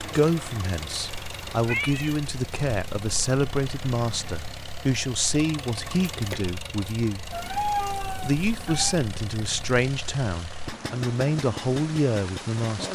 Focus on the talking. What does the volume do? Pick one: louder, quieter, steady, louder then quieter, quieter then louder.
steady.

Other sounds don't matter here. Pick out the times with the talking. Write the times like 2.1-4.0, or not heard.
0.0-7.2, 8.2-12.9.